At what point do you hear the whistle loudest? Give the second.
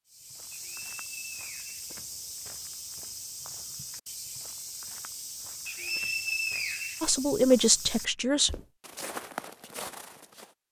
6 s.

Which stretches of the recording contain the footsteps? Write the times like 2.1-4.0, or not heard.
0.1-10.6.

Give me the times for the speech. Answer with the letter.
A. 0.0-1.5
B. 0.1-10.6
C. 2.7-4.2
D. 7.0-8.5
D.